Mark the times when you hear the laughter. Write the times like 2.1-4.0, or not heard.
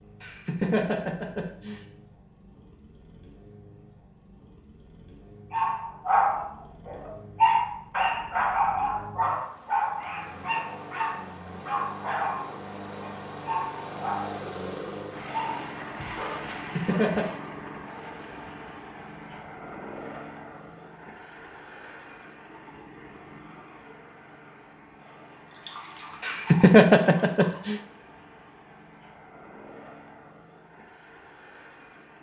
0.2-1.8, 16.6-17.3, 26.2-27.8.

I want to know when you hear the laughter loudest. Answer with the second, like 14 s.
27 s.